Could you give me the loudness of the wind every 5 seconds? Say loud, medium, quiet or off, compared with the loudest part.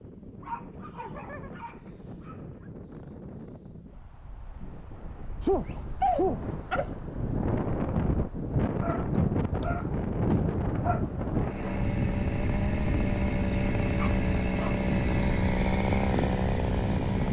quiet, loud, loud, loud.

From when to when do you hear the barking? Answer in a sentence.
You can hear the barking from 0.4 to 2.6 s, from 5.4 to 6.9 s, from 8.8 to 11.0 s and from 13.9 to 14.8 s.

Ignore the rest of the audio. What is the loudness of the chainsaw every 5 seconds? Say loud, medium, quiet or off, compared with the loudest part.
off, off, loud, loud.